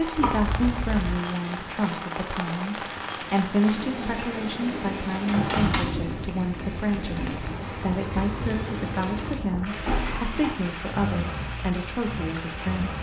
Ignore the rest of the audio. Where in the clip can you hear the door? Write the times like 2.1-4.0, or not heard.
0.1-1.3, 5.2-6.2, 9.8-10.6.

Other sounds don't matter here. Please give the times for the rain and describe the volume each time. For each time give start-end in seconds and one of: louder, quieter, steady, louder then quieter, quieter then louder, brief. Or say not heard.
0.0-12.9 steady.